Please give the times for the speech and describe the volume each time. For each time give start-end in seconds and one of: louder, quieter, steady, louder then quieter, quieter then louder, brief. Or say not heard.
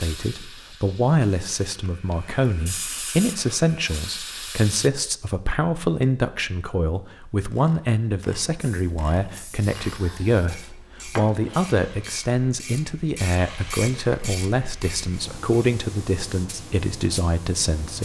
0.0-17.9 steady.